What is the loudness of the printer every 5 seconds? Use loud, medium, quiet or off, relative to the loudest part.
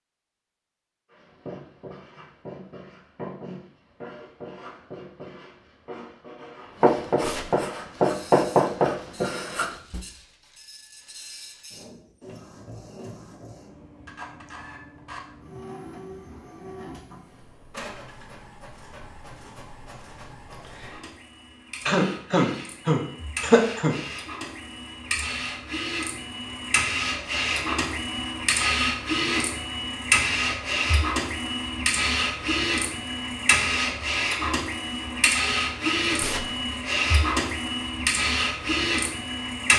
off, quiet, quiet, quiet, quiet, loud, loud, loud.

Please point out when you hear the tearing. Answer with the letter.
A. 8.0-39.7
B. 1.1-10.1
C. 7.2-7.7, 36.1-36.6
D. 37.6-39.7
C.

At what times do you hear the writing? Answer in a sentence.
The writing can be heard from 1.1 to 10.1 s.